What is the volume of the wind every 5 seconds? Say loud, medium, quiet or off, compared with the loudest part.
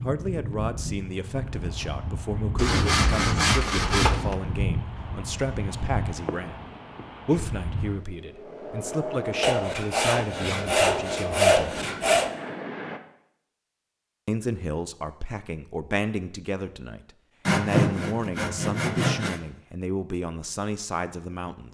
loud, loud, loud, off, off.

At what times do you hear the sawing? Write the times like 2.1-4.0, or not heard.
2.5-4.3, 9.4-12.3, 17.4-19.4.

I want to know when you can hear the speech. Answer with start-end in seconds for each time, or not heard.
0.0-6.7, 7.2-11.8, 14.2-21.6.